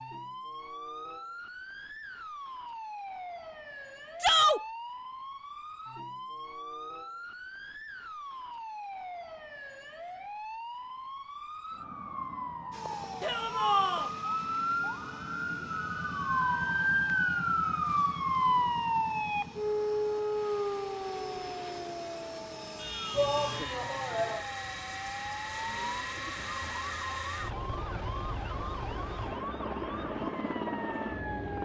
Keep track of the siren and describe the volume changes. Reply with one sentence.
The volume of the siren goes up, then down.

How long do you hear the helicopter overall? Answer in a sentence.
The helicopter can be heard for 19 seconds in total.